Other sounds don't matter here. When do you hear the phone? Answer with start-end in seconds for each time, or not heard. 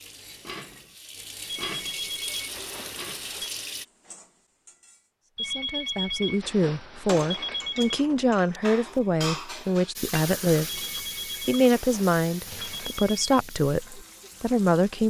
1.7-3.5, 5.3-8.0, 10.9-13.4.